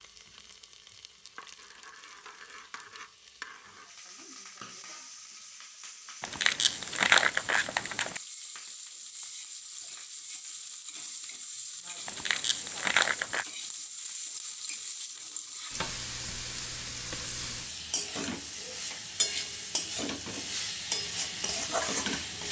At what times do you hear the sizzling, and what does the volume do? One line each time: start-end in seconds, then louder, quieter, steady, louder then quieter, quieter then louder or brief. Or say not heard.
0.0-22.4 louder.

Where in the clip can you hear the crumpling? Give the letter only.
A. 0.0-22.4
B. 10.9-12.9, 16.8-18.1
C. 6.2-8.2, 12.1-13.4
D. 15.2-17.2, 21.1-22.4
C.